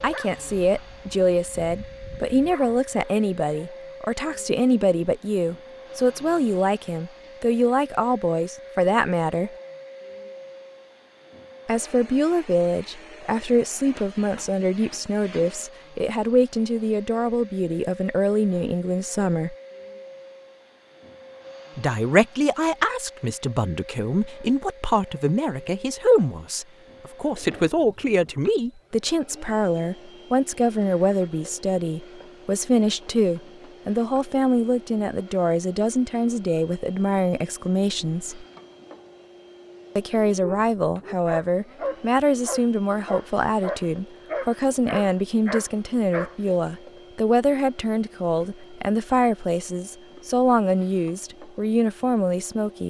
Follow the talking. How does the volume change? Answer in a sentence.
The loudness of the talking stays about the same.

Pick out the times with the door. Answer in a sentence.
You can't hear the door here.